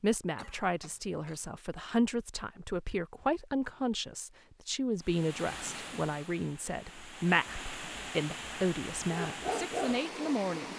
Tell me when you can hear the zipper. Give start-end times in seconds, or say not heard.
not heard.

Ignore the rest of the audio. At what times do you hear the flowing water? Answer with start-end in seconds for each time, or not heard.
5.0-10.7.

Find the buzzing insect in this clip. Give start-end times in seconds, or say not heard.
not heard.